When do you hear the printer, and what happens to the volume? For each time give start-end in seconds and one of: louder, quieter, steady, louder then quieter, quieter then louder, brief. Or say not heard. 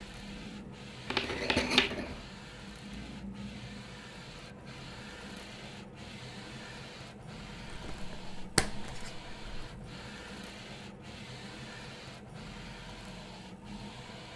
0.0-14.3 steady.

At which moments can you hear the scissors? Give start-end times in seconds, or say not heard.
1.1-2.2, 7.7-9.7.